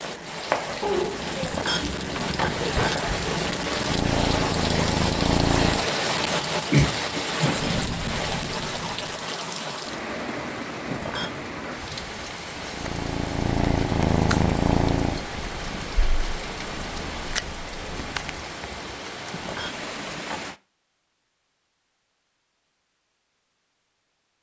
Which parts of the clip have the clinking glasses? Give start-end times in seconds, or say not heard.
1.4-3.1, 10.9-11.4, 19.3-20.4.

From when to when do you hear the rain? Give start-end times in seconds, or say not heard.
0.0-20.6.